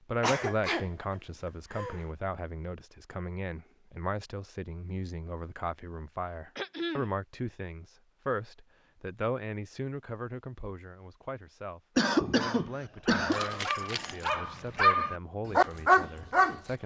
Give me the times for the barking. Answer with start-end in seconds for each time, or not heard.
12.4-16.6.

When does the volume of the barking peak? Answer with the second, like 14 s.
16 s.